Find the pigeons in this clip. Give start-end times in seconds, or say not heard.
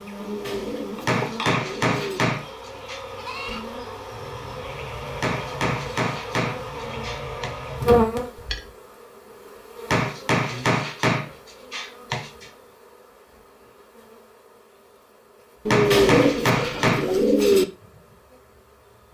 0.1-2.2, 15.7-17.6.